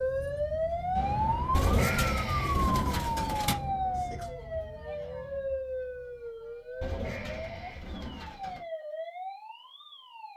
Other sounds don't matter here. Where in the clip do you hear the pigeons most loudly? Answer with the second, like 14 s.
2 s.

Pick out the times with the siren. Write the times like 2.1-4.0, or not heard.
0.0-10.3.